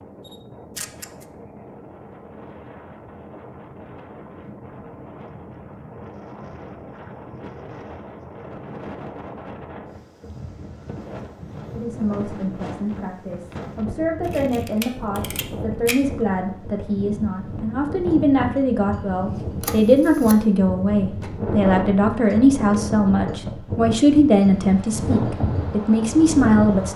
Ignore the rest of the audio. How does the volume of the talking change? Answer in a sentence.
The volume of the talking goes up.